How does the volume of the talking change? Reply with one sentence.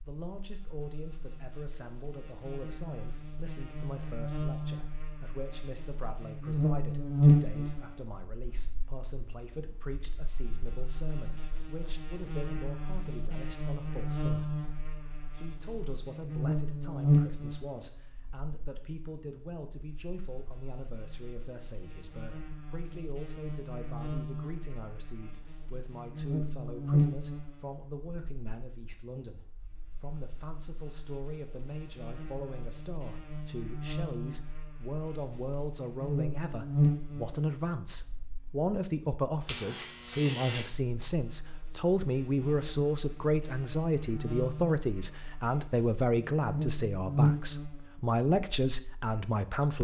The volume of the talking goes up.